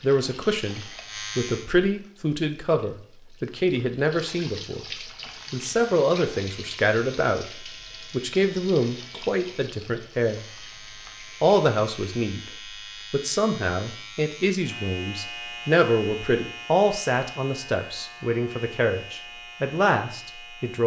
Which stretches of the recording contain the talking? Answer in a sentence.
You can hear the talking from 0.0 to 10.4 s, from 11.4 to 12.5 s and from 13.1 to 20.8 s.